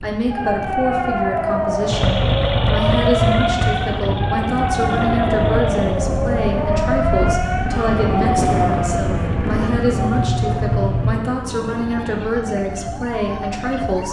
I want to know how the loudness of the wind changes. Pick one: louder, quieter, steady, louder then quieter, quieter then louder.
louder then quieter.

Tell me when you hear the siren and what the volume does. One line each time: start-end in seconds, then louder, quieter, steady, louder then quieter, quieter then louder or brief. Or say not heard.
0.2-14.0 quieter.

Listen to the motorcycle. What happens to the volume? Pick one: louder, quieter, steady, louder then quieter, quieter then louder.
quieter then louder.